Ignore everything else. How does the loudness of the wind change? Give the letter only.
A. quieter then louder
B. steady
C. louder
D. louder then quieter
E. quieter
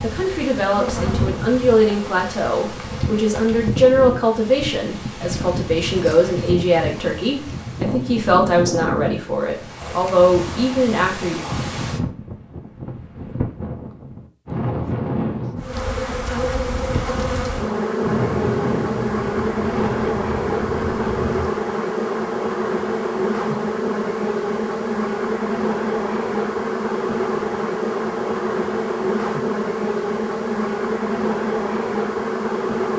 B.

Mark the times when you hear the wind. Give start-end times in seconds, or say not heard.
0.0-21.5.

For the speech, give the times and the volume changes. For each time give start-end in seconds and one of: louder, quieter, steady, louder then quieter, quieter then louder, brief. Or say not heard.
0.0-11.4 steady.